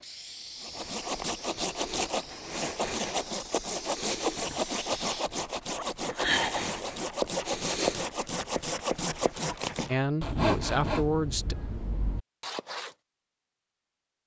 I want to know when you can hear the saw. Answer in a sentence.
The saw can be heard from 0.6 to 12.9 s.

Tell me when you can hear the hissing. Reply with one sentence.
You can hear the hissing from 0.0 to 5.3 s.